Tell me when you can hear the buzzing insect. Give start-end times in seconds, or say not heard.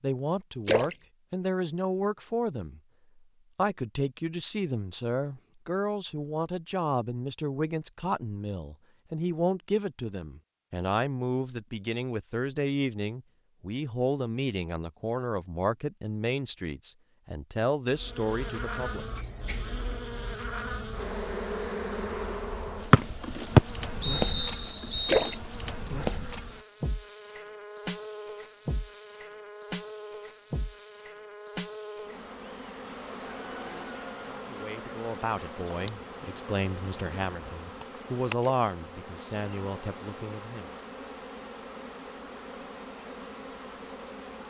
17.9-44.4.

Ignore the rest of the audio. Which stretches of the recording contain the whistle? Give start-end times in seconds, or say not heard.
22.9-25.4.